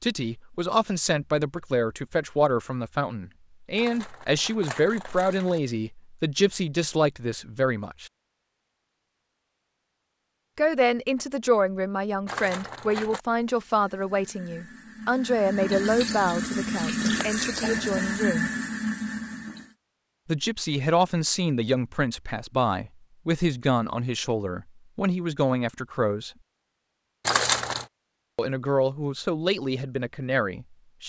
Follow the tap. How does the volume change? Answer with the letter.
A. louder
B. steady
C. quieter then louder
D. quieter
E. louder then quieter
A.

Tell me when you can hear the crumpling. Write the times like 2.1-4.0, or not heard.
3.8-5.6, 12.2-13.2, 27.2-27.9.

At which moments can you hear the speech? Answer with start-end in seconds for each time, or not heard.
0.0-8.1, 10.6-18.5, 20.2-26.3, 28.4-31.0.